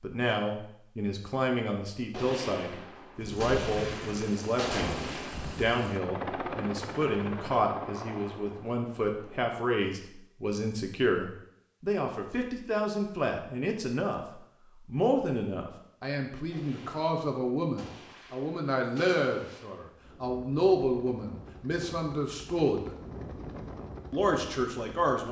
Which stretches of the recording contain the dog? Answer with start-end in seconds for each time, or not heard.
not heard.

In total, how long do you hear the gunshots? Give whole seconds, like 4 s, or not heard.
7 s.